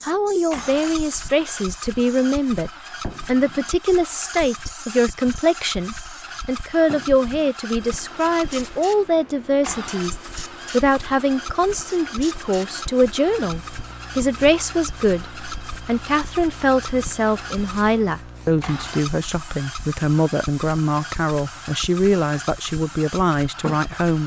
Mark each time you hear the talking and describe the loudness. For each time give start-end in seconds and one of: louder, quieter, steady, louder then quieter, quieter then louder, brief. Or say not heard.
0.0-24.2 steady.